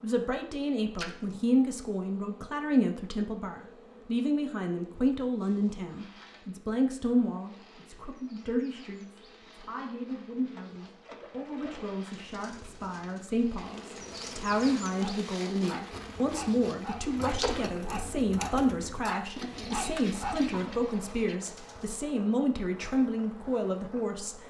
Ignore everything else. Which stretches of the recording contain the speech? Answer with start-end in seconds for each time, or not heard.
0.0-24.4.